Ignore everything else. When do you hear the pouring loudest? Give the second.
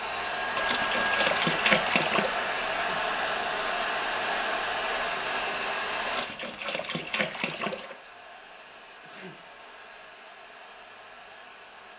2 s.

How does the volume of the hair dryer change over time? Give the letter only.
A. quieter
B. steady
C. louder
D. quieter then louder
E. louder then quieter
A.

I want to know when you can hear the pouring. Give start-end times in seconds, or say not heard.
0.6-2.4, 6.0-8.0.